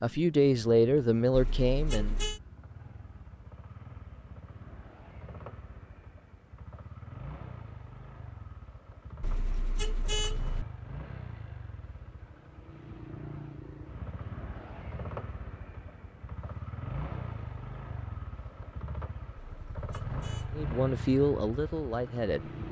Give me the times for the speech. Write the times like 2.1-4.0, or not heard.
0.0-2.1, 20.6-22.5.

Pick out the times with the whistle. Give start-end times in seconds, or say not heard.
not heard.